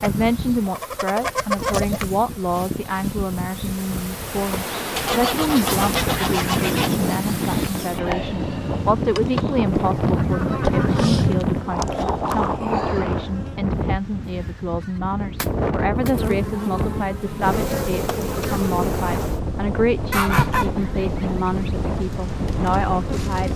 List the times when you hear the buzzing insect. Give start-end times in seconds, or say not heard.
0.0-13.8, 15.9-23.5.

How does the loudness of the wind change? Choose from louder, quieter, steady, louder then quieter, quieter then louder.
steady.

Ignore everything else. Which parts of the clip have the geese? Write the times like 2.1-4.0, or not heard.
0.0-2.0, 5.0-7.0, 9.7-11.6, 14.8-16.1, 20.1-21.7.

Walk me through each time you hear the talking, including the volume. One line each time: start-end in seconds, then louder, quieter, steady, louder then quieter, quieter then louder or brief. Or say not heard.
0.0-23.5 steady.